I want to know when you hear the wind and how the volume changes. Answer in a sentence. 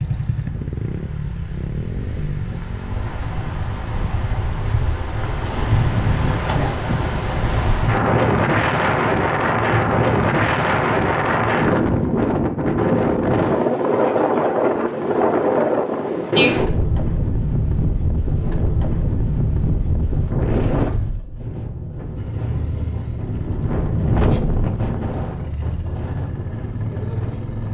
The wind can be heard from 0.0 to 27.6 s, getting louder then quieter.